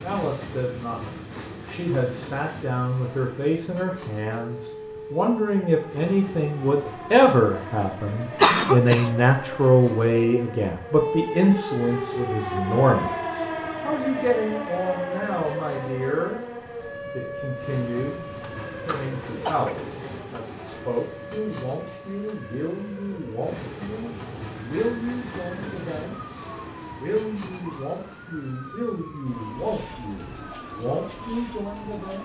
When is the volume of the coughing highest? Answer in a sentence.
The loudest moment of the coughing is at 9 seconds.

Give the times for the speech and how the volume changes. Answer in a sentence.
You can hear the speech from 0.0 to 16.4 s, getting louder then quieter; and from 17.1 to 32.1 s, at a steady volume.